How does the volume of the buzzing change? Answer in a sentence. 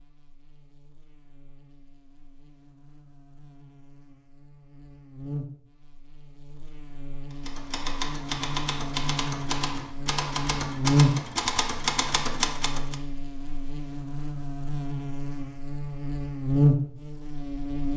The volume of the buzzing goes up.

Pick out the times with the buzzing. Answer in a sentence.
You can hear the buzzing from 0.0 to 17.9 s.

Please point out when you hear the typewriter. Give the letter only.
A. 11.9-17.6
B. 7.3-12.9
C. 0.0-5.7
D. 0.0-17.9
B.